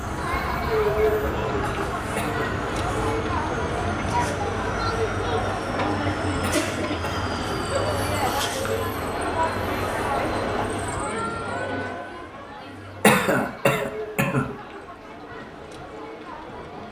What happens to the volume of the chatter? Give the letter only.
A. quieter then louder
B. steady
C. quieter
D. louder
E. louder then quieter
C.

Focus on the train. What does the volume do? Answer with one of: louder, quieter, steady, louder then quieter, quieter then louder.
quieter.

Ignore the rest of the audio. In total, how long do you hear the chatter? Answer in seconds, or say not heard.
17 s.